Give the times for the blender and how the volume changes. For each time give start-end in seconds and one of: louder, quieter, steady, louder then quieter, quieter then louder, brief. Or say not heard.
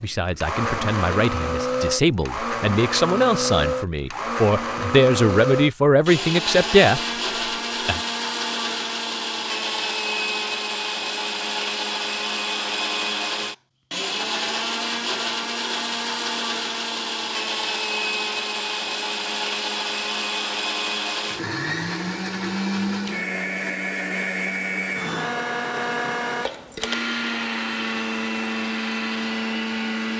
0.0-30.1 steady.